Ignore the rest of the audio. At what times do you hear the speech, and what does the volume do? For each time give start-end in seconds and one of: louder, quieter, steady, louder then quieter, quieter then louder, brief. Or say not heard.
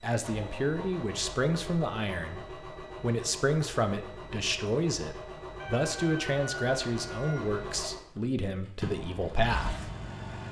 0.0-9.9 steady.